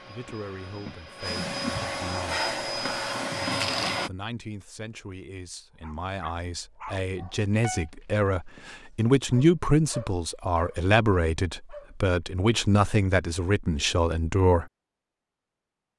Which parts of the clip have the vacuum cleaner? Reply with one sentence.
You can hear the vacuum cleaner from 0.0 to 4.1 s.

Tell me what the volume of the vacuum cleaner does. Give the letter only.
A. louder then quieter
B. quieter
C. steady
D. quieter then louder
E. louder
E.